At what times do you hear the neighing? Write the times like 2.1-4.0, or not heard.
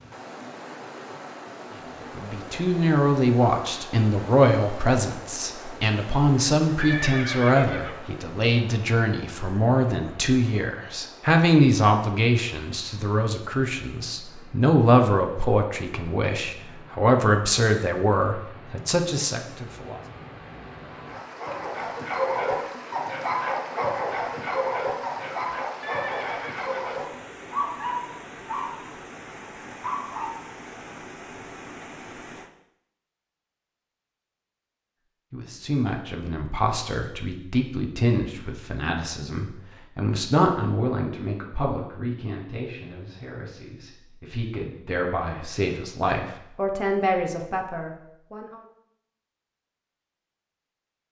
6.8-8.0, 25.8-27.0.